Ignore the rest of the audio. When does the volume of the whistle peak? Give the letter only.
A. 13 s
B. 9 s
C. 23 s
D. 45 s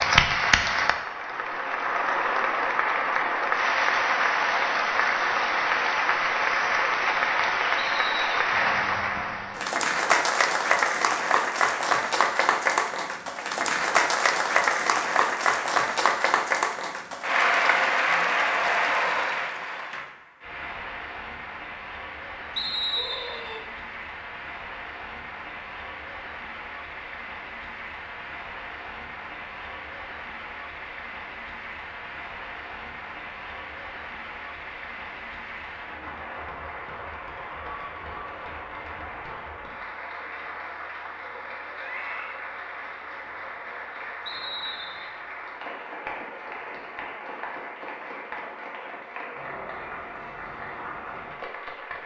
C.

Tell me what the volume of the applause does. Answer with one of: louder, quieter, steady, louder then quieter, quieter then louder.
quieter.